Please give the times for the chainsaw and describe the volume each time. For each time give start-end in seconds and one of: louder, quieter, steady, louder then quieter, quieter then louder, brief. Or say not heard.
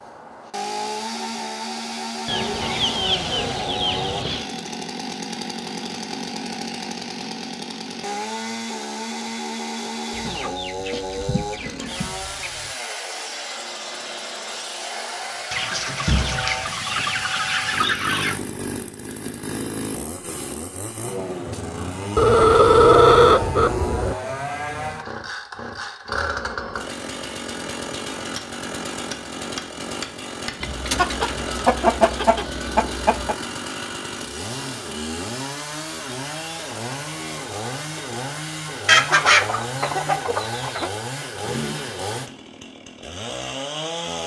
0.0-44.2 steady.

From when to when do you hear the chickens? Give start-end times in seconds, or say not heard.
2.2-4.5, 10.1-12.7, 15.5-18.4, 22.1-24.1, 30.6-33.4, 38.9-40.9.